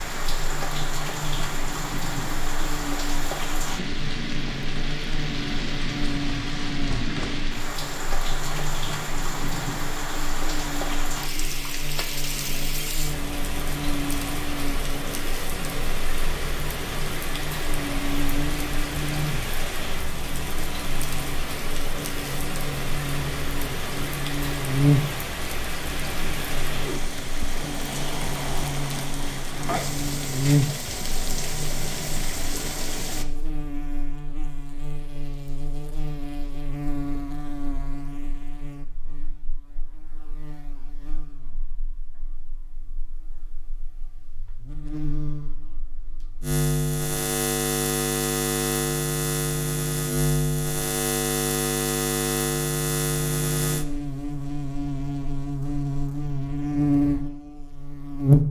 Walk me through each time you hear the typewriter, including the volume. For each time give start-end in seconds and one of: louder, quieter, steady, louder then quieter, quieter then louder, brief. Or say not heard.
not heard.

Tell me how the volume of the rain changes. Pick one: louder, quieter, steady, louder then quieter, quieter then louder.
steady.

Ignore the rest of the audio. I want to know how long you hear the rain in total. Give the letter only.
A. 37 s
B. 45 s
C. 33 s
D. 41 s
C.